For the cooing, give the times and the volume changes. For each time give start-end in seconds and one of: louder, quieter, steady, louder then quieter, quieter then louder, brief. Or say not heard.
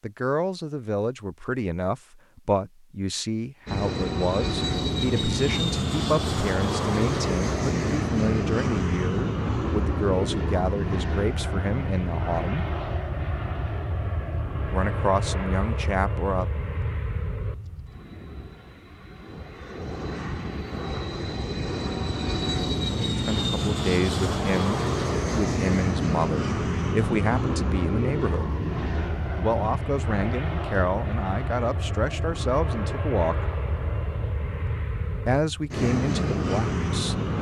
not heard.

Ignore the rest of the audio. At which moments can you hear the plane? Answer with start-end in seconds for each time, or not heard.
3.6-37.3.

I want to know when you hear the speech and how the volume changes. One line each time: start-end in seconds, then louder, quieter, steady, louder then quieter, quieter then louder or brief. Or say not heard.
0.0-12.7 steady
14.7-16.4 brief
23.1-28.5 steady
29.4-33.5 steady
35.2-37.1 brief.